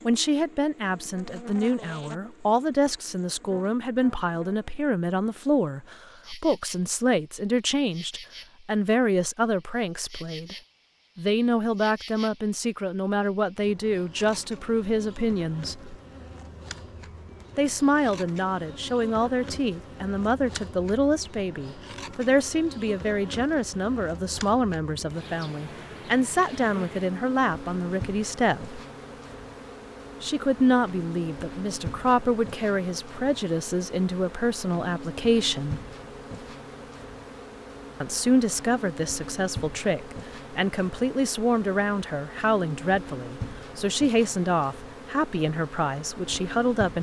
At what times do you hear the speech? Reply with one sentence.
You can hear the speech from 0.1 to 10.6 s, from 11.2 to 15.9 s, from 17.6 to 28.8 s, from 30.2 to 35.8 s and from 38.0 to 46.9 s.